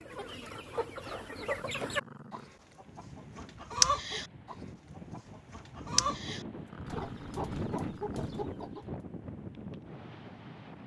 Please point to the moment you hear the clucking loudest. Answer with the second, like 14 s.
4 s.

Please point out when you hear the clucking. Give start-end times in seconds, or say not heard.
0.0-8.8.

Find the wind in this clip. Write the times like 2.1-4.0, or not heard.
2.6-10.8.